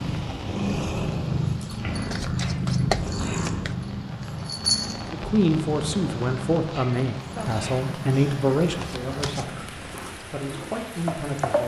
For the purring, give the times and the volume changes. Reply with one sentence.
The purring can be heard from 0.0 to 11.6 s, getting quieter.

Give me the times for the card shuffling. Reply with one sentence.
The card shuffling can be heard from 2.1 to 3.8 s and from 8.7 to 9.4 s.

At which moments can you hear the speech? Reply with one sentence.
You can hear the speech from 5.1 to 11.6 s.